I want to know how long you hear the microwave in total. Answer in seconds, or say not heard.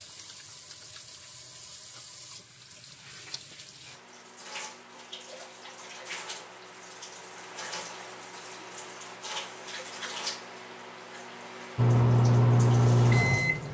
2 s.